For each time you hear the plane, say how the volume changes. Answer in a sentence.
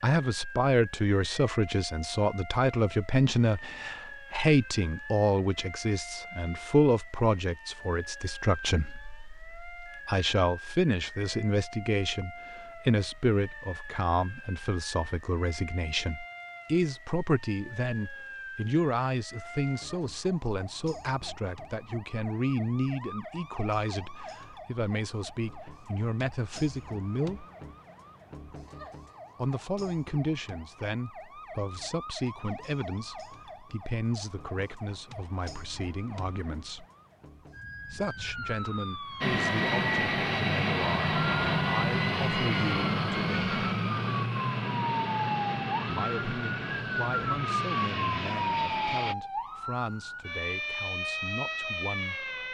The plane can be heard from 39.2 to 49.1 s, getting quieter.